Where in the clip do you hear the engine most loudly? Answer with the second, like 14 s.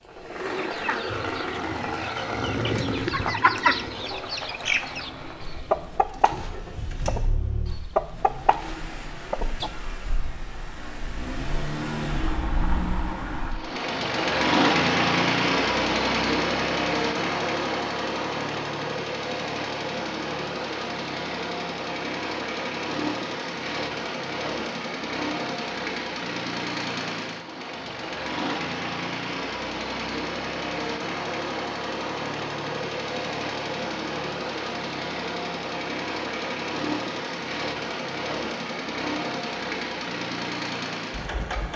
15 s.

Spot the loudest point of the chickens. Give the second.
4 s.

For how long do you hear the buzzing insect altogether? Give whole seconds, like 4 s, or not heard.
not heard.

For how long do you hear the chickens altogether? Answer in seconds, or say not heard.
9 s.